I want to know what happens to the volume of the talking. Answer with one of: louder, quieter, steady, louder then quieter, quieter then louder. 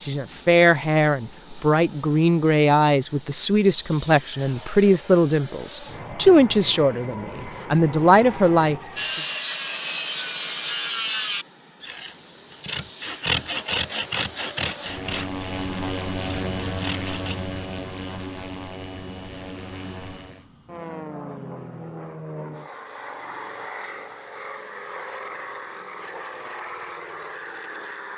steady.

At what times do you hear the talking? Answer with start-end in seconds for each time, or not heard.
0.0-9.2.